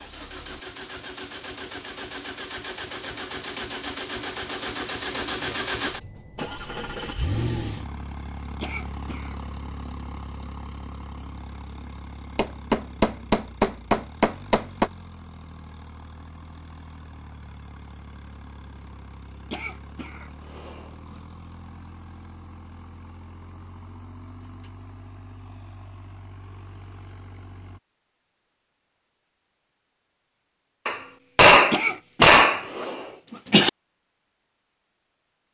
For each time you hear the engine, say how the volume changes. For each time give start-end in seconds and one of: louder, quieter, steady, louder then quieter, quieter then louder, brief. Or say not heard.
0.0-27.8 quieter.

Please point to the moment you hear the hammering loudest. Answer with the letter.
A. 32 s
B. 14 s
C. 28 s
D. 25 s
A.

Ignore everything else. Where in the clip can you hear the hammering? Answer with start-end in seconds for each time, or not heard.
12.3-14.8, 30.9-32.9.